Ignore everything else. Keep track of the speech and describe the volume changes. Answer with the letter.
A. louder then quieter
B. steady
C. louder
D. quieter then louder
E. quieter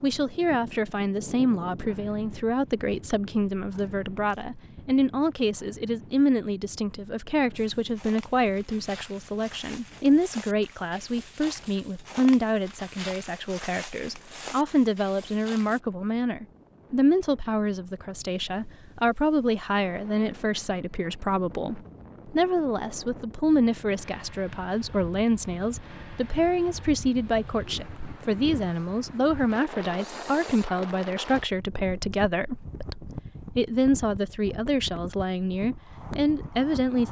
B.